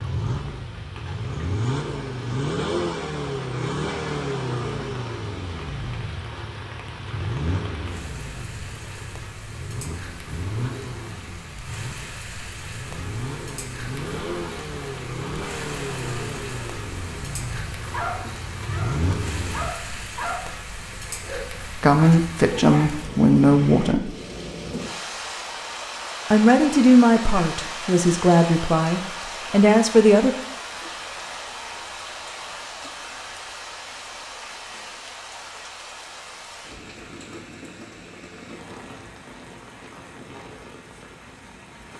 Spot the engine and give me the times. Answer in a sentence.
The engine can be heard from 0.0 to 19.7 s.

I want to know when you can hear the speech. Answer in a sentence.
The speech can be heard from 21.8 to 24.1 s and from 26.3 to 30.4 s.